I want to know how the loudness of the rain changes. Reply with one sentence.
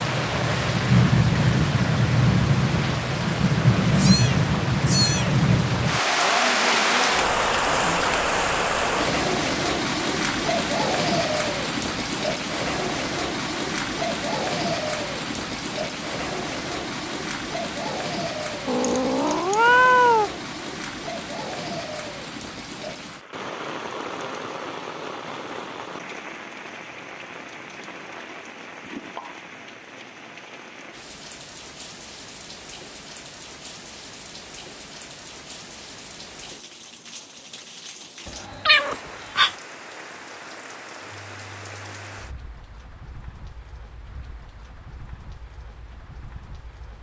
The loudness of the rain goes down.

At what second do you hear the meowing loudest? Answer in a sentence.
The loudest moment of the meowing is at 20 seconds.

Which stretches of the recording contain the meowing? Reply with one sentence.
You can hear the meowing from 4.0 to 5.4 s, from 18.6 to 20.3 s and from 38.6 to 39.5 s.